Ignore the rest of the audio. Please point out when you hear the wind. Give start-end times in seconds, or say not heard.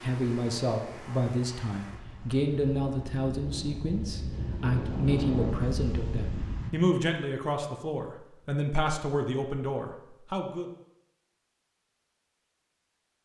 0.0-6.7.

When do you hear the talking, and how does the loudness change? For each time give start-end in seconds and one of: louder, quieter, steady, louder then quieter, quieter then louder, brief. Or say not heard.
0.0-10.7 steady.